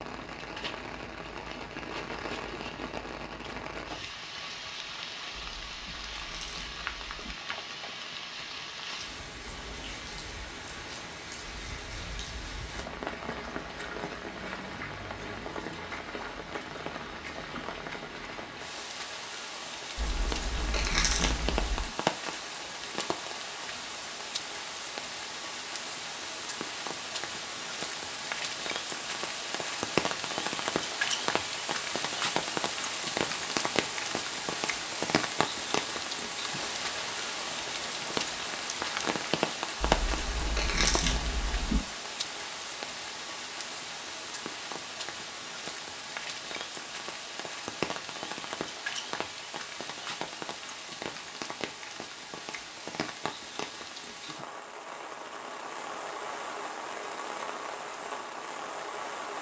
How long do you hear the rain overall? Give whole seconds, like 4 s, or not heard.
59 s.